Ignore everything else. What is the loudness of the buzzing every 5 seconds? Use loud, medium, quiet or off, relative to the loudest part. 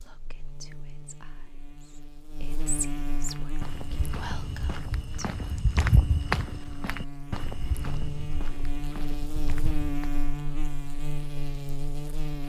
medium, loud, loud.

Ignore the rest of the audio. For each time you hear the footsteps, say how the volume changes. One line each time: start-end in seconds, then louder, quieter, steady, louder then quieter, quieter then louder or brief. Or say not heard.
3.2-10.2 louder then quieter.